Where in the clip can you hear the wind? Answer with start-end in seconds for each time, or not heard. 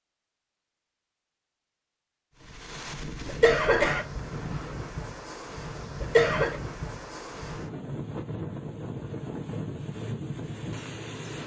2.4-11.4.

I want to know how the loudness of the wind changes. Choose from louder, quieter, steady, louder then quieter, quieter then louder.
steady.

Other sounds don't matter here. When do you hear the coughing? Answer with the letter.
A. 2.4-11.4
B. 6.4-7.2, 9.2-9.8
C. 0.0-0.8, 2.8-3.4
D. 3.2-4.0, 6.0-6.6
D.